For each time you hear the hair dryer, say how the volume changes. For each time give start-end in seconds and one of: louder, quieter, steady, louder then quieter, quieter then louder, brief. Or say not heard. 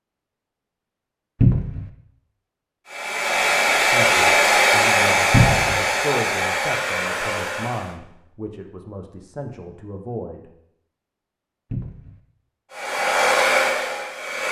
2.9-8.0 quieter
12.7-14.4 brief.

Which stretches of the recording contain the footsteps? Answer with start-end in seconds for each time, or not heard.
not heard.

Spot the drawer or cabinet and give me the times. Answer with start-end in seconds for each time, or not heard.
1.4-1.9, 5.3-5.8, 11.7-12.2.